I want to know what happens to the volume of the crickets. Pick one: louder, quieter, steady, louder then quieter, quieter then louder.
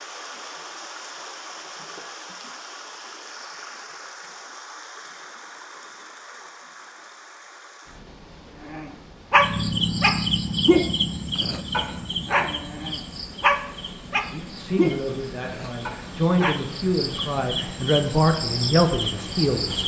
quieter then louder.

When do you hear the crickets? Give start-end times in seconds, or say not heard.
9.3-19.8.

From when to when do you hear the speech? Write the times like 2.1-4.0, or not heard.
14.3-19.8.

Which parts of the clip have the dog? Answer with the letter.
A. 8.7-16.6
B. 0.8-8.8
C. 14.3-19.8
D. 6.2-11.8
A.